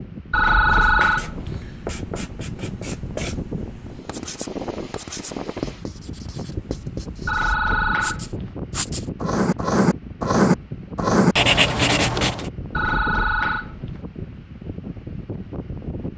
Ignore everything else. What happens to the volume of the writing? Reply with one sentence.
The volume of the writing goes up.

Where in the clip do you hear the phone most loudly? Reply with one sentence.
The volume of the phone peaks at 1 second.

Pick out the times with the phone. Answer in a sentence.
The phone can be heard from 0.3 to 1.6 s, from 7.2 to 8.6 s and from 12.7 to 14.1 s.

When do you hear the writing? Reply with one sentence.
The writing can be heard from 0.7 to 12.4 s.